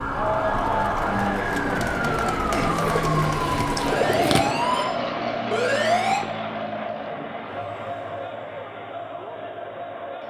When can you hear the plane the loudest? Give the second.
3 s.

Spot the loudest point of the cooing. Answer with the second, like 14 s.
4 s.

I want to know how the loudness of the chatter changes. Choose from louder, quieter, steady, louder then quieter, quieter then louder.
quieter.